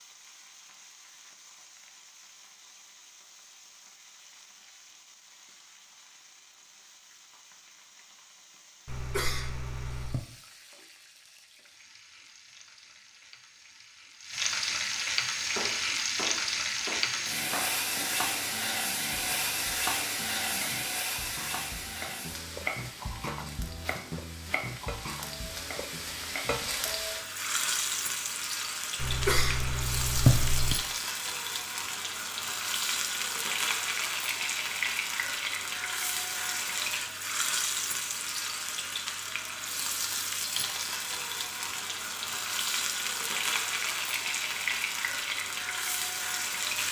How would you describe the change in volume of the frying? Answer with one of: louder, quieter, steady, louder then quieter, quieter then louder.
louder.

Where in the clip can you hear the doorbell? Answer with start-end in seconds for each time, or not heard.
not heard.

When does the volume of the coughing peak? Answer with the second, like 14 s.
30 s.